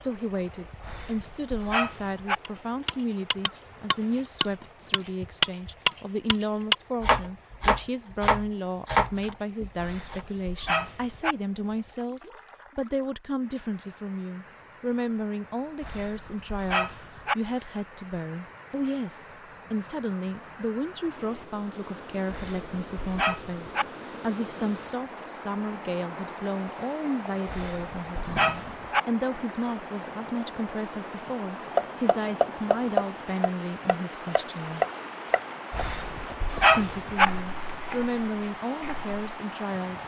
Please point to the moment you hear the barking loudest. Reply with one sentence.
The loudest moment of the barking is at 37 seconds.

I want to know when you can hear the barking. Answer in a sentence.
You can hear the barking from 0.8 to 2.4 s, from 9.8 to 11.3 s, from 15.8 to 17.4 s, from 22.3 to 23.9 s, from 27.4 to 29.0 s and from 35.7 to 37.2 s.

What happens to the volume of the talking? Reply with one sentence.
The volume of the talking stays about the same.